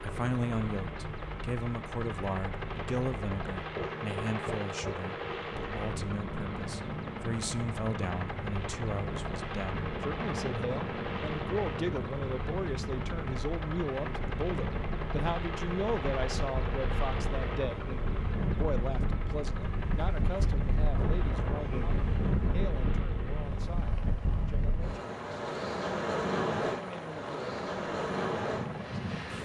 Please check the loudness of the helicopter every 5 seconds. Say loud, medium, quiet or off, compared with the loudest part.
loud, loud, loud, loud, medium, medium.